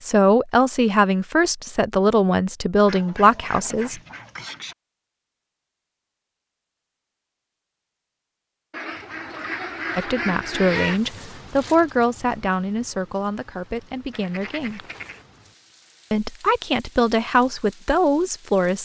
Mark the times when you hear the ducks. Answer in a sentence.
You can hear the ducks from 2.9 to 4.8 s, from 8.7 to 11.0 s and from 14.1 to 15.2 s.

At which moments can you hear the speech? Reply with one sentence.
The speech can be heard from 0.0 to 4.0 s, from 9.9 to 14.8 s and from 16.1 to 18.8 s.